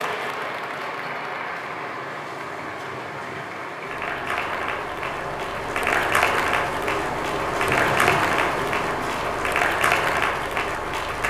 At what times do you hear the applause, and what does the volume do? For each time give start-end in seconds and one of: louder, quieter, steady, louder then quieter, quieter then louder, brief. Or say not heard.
0.0-11.2 louder.